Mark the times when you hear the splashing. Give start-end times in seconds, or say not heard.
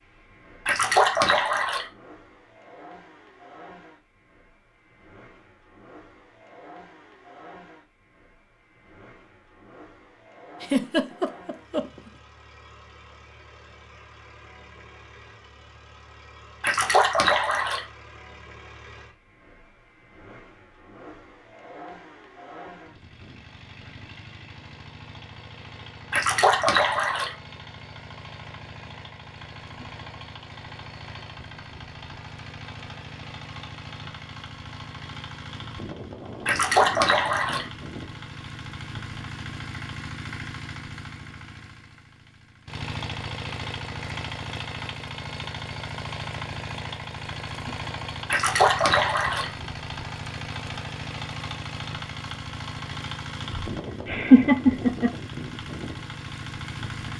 0.7-1.9, 16.6-17.9, 26.1-27.3, 36.5-37.6, 48.2-49.5.